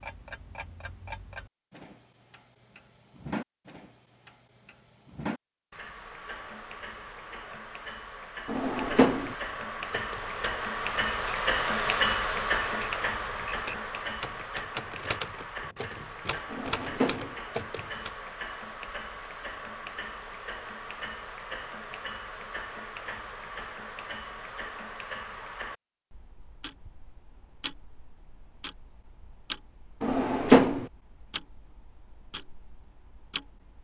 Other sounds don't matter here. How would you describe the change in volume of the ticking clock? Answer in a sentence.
The loudness of the ticking clock goes up, then down.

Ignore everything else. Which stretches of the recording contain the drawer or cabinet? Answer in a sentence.
You can hear the drawer or cabinet from 8.4 to 9.3 s, from 16.5 to 17.4 s and from 30.0 to 30.9 s.